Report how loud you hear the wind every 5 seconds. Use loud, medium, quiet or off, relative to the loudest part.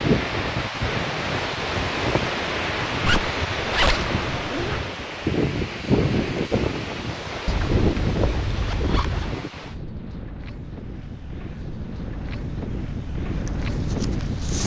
loud, loud, medium.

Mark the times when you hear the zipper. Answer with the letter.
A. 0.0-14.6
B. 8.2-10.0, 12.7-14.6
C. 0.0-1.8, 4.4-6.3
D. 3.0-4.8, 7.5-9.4
D.